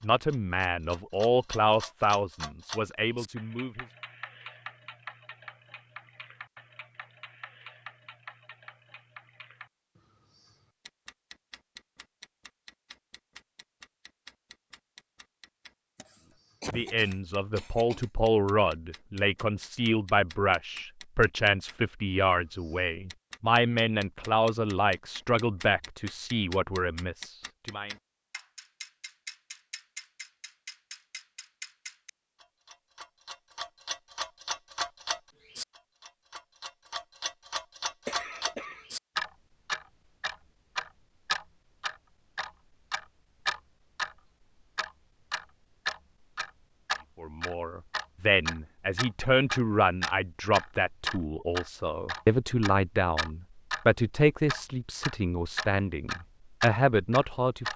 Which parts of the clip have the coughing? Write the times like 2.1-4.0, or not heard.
15.9-18.1, 38.0-38.9.